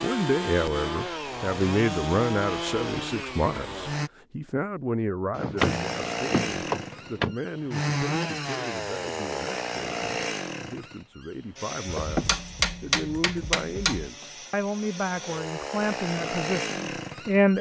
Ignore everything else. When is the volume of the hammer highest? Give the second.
13 s.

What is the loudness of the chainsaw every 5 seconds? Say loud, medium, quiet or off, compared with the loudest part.
loud, loud, medium, loud.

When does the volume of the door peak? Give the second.
6 s.